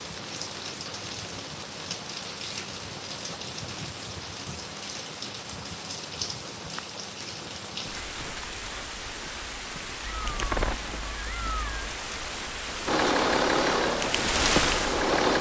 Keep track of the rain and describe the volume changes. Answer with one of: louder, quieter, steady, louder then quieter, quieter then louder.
louder.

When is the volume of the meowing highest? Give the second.
11 s.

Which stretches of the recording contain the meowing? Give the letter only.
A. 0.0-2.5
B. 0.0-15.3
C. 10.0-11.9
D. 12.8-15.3
C.